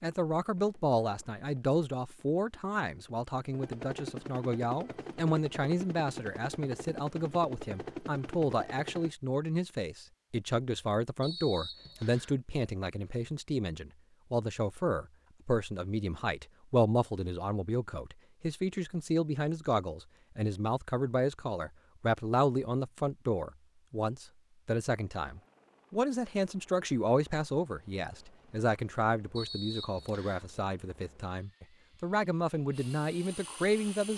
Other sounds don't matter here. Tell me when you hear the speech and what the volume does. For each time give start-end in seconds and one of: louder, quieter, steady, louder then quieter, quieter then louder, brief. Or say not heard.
0.0-34.1 steady.